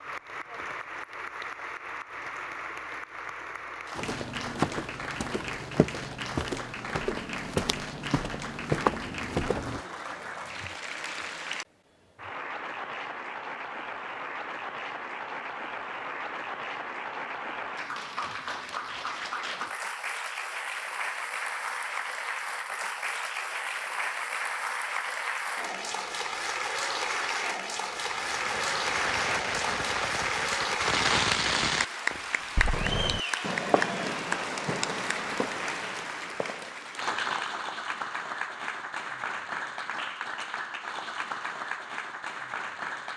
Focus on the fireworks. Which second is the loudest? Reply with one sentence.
The volume of the fireworks peaks at 31 seconds.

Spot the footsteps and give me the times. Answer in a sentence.
The footsteps can be heard from 4.0 to 9.8 s.